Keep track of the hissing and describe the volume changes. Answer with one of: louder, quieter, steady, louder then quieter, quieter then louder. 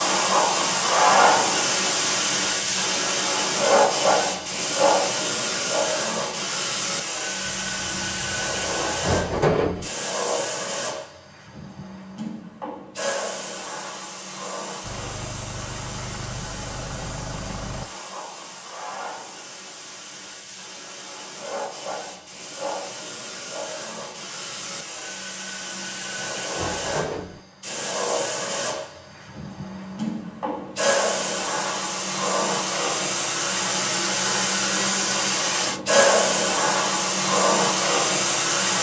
quieter then louder.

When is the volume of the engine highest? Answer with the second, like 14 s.
17 s.